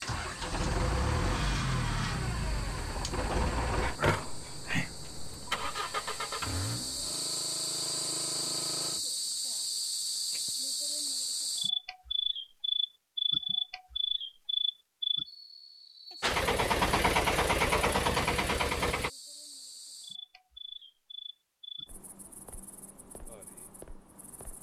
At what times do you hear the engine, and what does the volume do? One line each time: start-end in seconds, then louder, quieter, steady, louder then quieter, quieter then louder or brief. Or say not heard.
0.0-9.0 quieter
16.2-19.1 brief.